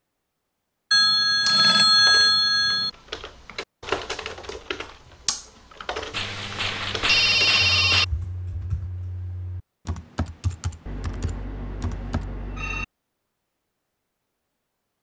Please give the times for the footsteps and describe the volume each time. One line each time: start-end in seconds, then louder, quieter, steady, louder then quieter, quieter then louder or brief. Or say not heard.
not heard.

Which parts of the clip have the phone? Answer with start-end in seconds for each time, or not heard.
0.9-2.9, 6.1-8.1, 10.8-12.8.